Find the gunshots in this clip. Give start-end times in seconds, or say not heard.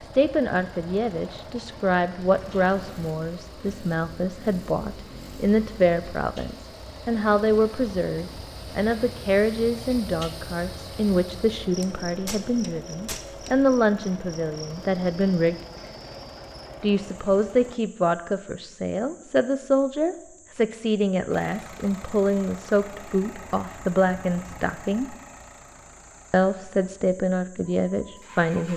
11.8-13.5.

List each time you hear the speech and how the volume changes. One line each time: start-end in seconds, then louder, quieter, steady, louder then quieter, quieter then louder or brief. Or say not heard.
0.1-15.6 steady
16.8-25.1 steady
26.3-28.7 brief.